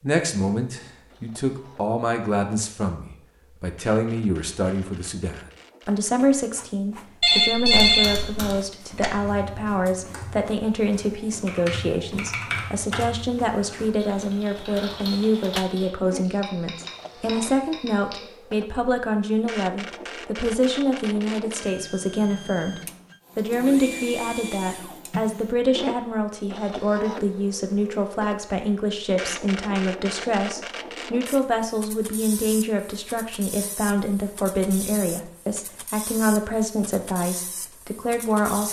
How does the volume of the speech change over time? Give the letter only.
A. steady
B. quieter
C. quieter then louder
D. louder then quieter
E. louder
A.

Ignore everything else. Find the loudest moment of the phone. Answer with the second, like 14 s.
8 s.